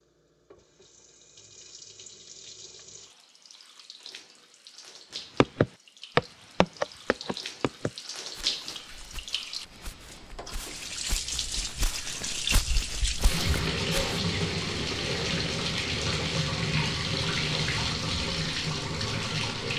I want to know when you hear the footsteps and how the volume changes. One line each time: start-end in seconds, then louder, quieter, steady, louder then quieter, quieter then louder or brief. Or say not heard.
5.4-14.2 quieter then louder.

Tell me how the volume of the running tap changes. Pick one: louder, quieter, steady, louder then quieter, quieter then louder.
louder.